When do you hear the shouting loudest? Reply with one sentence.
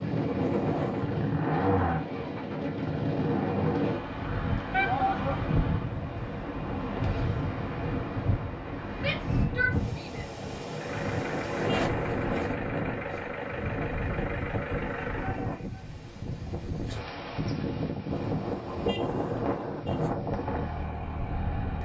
The loudest moment of the shouting is at 5 seconds.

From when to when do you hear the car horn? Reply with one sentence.
You can hear the car horn from 0.4 to 1.1 s, from 10.9 to 12.4 s and from 18.1 to 20.1 s.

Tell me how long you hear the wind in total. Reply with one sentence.
The wind can be heard for 22 seconds in total.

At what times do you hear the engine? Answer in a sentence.
You can hear the engine from 0.1 to 6.0 s, from 10.7 to 15.5 s and from 20.2 to 21.8 s.